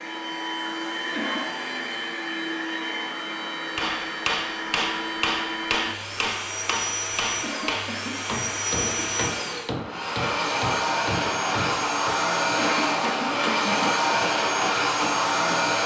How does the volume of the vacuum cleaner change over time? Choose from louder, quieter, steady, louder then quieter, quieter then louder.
louder.